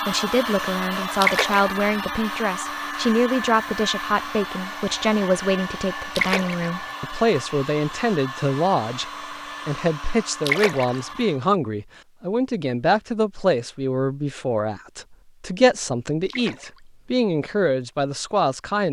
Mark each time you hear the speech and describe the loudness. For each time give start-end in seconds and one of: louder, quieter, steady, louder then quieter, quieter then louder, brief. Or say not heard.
0.1-18.8 steady.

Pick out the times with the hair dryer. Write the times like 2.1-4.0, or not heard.
0.0-11.4.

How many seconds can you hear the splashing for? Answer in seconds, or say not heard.
2 s.